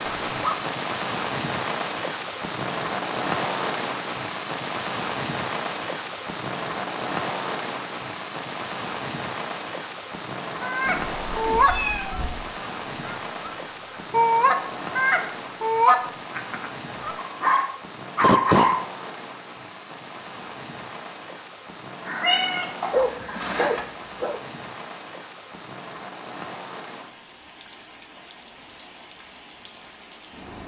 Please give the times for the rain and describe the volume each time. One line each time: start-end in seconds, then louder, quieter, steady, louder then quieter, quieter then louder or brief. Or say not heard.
0.0-30.6 quieter.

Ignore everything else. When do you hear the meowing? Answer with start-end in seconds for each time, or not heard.
10.8-12.4, 22.1-23.9.